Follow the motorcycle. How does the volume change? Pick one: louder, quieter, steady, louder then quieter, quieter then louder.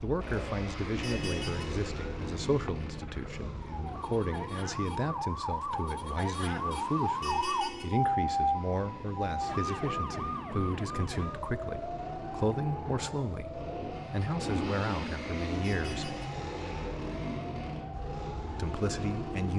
quieter then louder.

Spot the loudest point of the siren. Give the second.
8 s.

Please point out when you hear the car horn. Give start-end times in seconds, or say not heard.
1.0-1.6, 7.2-7.8, 15.6-16.2.